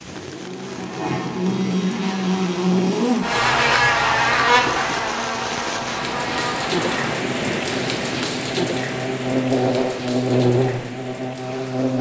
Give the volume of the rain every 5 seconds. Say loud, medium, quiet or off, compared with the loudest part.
medium, loud, medium.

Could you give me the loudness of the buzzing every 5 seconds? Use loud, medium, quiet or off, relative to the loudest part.
loud, medium, loud.